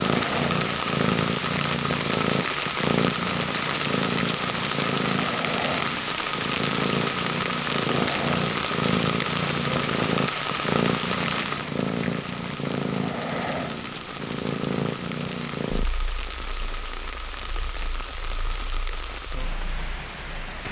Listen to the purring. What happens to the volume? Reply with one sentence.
The volume of the purring goes down.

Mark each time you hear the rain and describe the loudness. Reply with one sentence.
You can hear the rain from 0.0 to 20.6 s, getting quieter.